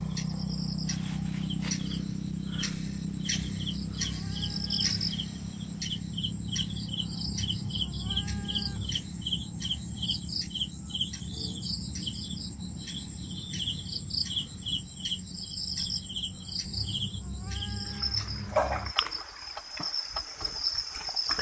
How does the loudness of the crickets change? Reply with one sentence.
The volume of the crickets stays about the same.